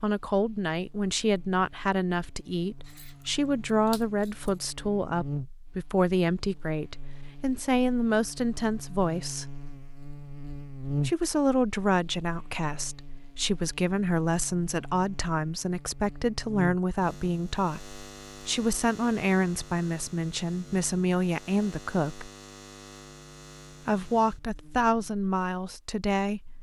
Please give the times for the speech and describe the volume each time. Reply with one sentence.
The speech can be heard from 0.0 to 9.4 s, at a steady volume; from 11.1 to 22.3 s, at a steady volume; and briefly from 23.9 to 26.5 s.